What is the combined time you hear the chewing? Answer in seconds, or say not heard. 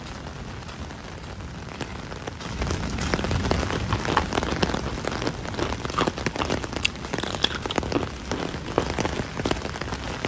5 s.